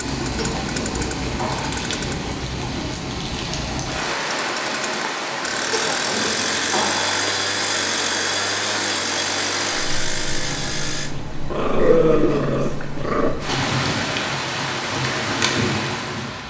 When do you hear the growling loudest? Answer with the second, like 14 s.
12 s.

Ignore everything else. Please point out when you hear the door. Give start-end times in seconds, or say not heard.
not heard.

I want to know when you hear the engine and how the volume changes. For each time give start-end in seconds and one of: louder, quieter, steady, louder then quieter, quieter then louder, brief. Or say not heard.
0.0-2.1 brief
4.3-11.2 steady.